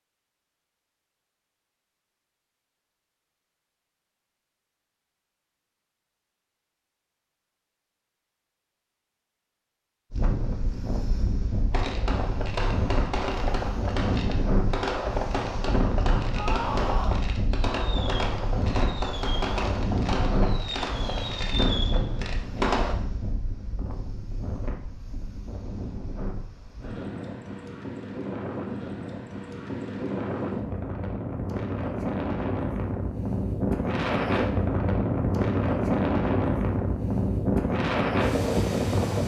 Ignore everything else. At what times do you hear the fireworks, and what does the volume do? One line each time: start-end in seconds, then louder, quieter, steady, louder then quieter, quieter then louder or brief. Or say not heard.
11.7-22.9 steady.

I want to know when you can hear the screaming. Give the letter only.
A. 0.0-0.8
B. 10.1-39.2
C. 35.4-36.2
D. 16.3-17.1
D.